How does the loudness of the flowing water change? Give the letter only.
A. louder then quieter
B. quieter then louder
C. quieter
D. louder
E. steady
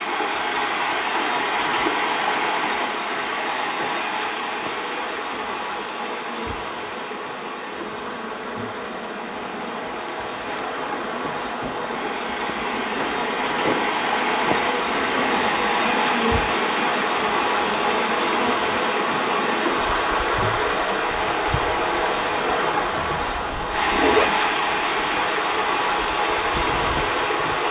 B.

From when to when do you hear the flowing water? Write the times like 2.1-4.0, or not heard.
0.0-27.6.